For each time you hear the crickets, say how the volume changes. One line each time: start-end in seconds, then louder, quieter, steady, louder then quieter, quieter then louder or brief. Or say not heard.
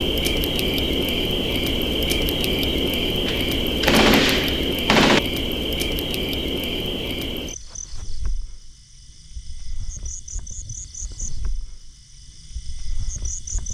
0.0-13.6 quieter.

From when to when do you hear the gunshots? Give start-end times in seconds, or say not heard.
3.2-5.2.